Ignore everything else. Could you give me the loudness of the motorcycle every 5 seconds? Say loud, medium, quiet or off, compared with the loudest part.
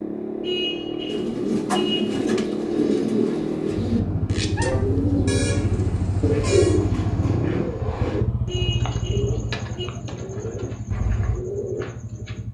loud, loud, medium.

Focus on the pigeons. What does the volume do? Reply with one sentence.
The volume of the pigeons goes down.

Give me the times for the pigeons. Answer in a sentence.
You can hear the pigeons from 1.1 to 12.4 s.